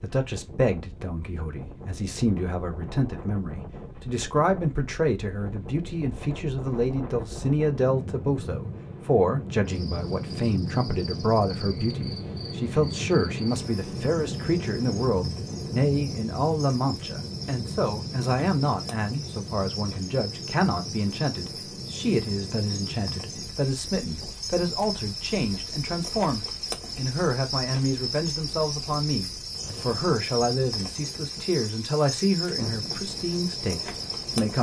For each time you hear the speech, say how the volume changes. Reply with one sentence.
You can hear the speech from 0.0 to 34.5 s, at a steady volume.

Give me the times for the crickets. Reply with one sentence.
You can hear the crickets from 9.7 to 34.5 s.